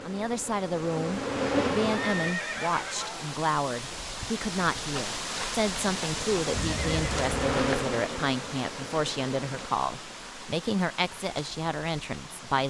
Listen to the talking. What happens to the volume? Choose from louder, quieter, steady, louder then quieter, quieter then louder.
steady.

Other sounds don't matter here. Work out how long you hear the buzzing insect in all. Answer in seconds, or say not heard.
6 s.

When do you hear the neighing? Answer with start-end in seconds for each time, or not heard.
1.8-3.4, 6.5-7.3.